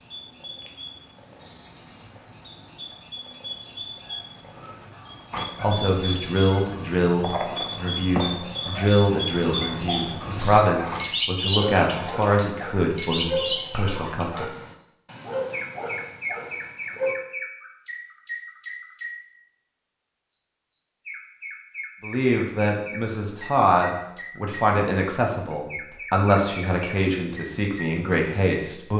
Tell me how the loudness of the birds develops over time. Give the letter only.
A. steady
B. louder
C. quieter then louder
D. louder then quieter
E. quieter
D.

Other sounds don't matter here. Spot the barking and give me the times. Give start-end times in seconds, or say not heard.
5.3-17.1.